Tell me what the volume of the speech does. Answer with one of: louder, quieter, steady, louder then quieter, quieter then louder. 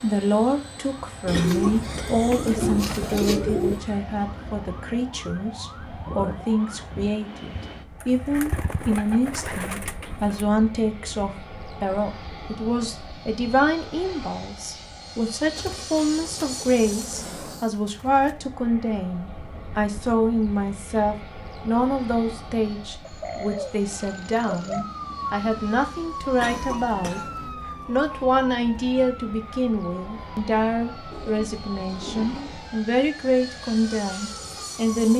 steady.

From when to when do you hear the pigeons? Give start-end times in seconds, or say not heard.
1.2-3.8, 8.0-10.4, 15.6-18.4, 23.0-24.9, 31.1-32.7.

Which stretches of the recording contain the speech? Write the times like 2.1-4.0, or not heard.
0.0-27.2, 27.9-35.1.